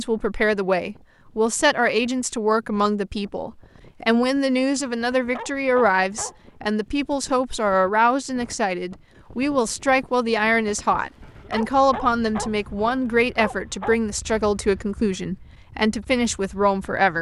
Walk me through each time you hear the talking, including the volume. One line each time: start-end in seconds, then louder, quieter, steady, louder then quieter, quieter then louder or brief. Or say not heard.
0.0-17.1 steady.